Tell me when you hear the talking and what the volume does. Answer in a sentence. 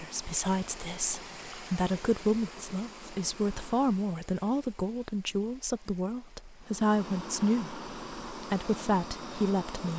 The talking can be heard from 0.0 to 9.9 s, at a steady volume.